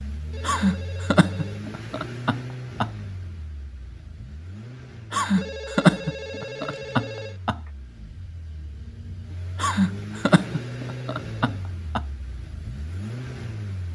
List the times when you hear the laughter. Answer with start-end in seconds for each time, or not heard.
0.4-2.9, 5.1-7.6, 9.6-12.0.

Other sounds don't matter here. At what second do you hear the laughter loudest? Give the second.
6 s.